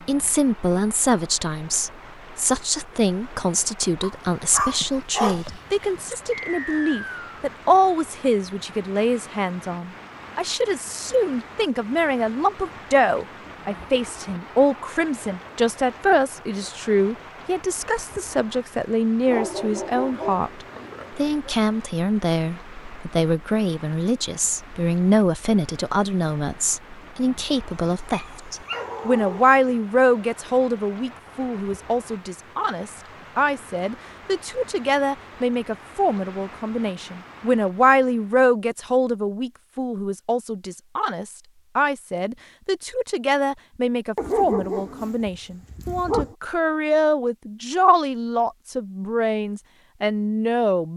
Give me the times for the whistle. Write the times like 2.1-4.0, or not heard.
6.3-7.3.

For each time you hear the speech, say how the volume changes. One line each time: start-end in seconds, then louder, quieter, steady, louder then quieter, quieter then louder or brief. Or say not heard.
0.1-50.9 steady.